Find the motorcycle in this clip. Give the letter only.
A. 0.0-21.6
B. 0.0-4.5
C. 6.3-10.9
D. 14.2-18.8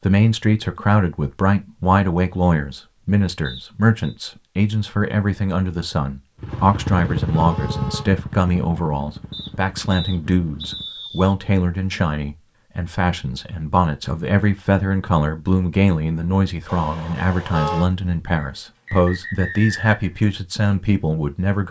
C.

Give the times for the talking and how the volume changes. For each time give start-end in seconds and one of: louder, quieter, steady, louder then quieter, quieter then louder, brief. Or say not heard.
0.0-21.6 steady.